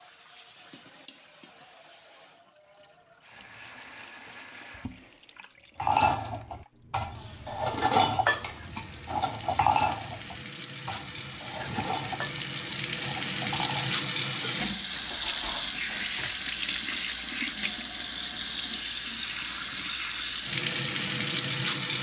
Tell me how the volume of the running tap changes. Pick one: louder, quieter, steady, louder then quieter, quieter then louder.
louder.